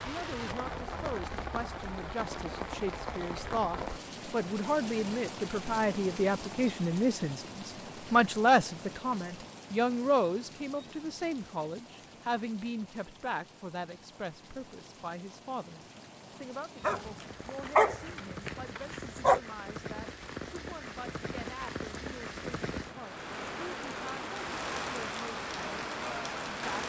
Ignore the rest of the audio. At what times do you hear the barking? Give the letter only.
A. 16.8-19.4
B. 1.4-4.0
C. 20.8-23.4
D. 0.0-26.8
A.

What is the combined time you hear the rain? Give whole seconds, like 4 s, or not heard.
27 s.